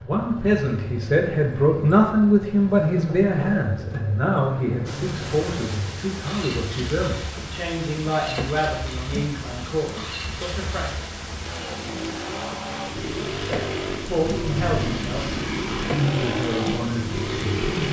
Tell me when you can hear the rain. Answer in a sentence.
The rain can be heard from 4.8 to 17.8 s.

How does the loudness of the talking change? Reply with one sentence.
The loudness of the talking goes down.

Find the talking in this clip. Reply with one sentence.
The talking can be heard from 0.0 to 11.1 s and from 13.4 to 17.8 s.